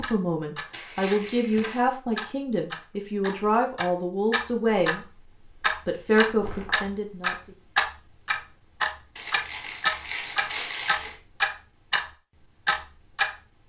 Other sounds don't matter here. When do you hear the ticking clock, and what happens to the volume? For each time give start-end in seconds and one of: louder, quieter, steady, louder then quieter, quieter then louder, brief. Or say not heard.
0.0-12.1 louder
12.7-13.3 brief.